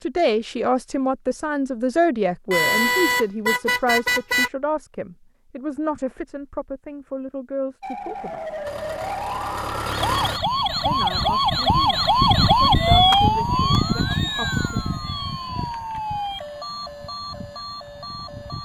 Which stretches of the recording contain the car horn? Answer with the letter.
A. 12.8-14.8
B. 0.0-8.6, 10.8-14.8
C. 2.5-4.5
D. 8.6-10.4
C.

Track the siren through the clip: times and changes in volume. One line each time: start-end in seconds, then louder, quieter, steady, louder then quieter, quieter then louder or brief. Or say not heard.
7.8-18.5 louder then quieter.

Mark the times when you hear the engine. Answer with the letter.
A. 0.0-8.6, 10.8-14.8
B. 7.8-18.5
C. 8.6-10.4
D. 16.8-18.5
C.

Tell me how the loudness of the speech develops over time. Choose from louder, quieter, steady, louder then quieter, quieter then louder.
quieter.